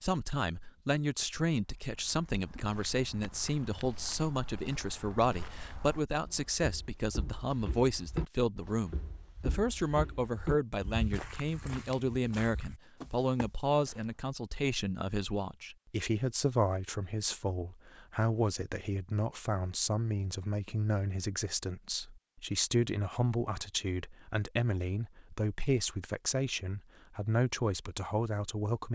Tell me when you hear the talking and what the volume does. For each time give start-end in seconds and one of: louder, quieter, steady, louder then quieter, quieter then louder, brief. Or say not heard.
0.0-28.9 steady.